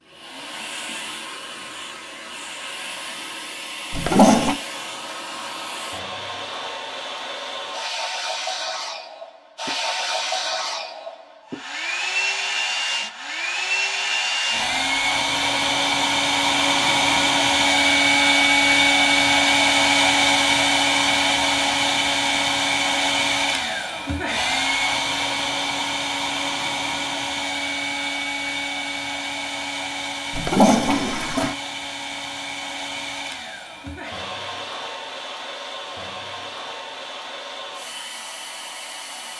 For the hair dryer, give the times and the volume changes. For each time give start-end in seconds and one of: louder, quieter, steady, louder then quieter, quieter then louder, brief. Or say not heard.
0.0-39.3 louder then quieter.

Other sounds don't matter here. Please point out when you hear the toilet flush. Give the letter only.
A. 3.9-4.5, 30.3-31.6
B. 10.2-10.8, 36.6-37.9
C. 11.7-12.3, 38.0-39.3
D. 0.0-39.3
A.